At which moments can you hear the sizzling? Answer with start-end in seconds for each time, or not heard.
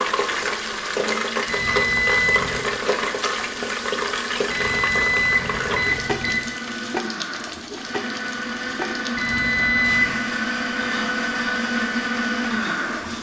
0.0-13.1.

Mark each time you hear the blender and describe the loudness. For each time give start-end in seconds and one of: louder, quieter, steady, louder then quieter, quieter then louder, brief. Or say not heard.
0.0-13.1 louder.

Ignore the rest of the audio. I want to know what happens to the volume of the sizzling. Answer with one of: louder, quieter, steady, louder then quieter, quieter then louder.
quieter.